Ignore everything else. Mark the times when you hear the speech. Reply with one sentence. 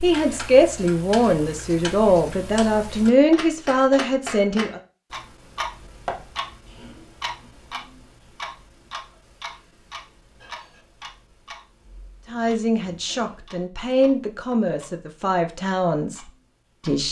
You can hear the speech from 0.0 to 4.8 s and from 12.2 to 17.0 s.